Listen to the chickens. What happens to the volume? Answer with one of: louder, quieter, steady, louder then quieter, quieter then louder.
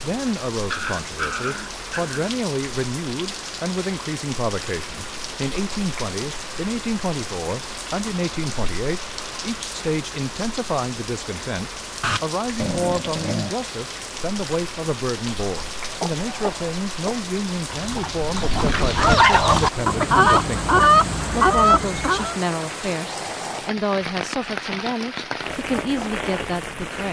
louder.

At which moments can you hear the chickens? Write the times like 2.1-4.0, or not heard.
15.8-22.4.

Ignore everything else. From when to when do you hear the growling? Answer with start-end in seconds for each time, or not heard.
0.7-2.3, 12.0-13.6, 23.1-23.6.